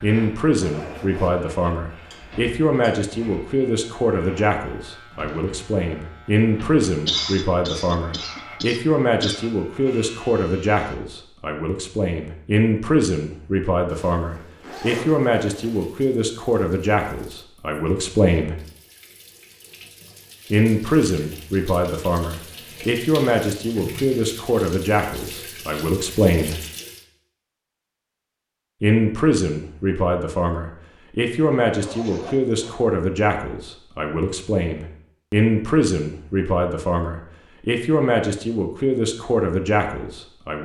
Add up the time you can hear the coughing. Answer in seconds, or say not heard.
2 s.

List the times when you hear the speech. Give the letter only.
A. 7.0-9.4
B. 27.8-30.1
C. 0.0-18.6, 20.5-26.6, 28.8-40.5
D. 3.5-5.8
C.